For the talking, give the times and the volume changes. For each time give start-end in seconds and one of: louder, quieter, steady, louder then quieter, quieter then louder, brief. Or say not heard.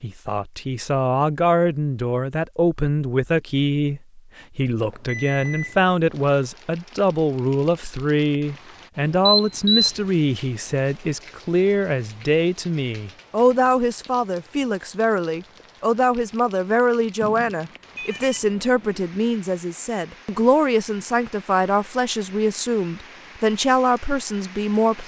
0.0-25.0 steady.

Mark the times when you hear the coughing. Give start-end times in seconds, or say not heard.
not heard.